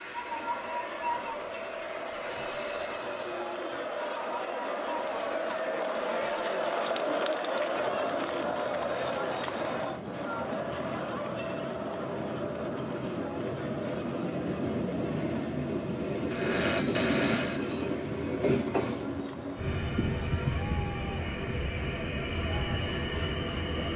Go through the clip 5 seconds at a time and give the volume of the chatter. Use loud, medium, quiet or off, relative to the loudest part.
medium, loud, medium, quiet, quiet.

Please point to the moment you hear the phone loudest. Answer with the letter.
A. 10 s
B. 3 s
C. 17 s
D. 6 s
C.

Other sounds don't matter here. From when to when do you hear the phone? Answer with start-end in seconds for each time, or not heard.
4.8-5.6, 8.7-10.2, 16.3-17.9.